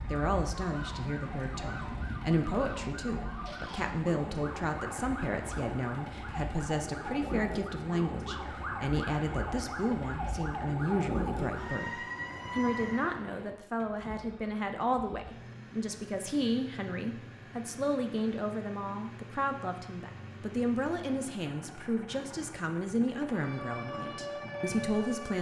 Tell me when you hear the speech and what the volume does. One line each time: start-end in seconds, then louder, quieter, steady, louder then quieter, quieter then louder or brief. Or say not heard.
0.1-25.3 steady.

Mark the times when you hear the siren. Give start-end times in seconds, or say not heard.
0.0-13.2, 23.2-25.3.